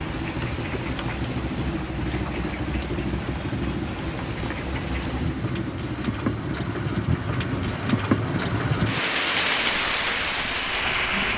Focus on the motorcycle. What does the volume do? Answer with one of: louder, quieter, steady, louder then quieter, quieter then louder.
quieter.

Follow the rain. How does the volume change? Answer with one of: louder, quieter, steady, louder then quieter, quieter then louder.
louder.